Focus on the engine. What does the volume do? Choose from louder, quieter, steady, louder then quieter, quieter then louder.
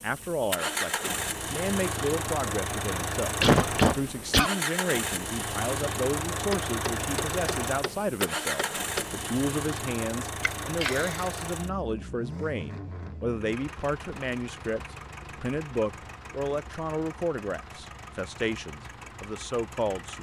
quieter.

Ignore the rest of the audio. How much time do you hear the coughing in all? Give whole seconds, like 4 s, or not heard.
2 s.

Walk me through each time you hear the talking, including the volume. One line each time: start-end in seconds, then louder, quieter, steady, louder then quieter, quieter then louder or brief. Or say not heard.
0.0-20.1 steady.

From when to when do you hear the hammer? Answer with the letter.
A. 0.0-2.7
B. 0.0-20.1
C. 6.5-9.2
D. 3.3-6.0
C.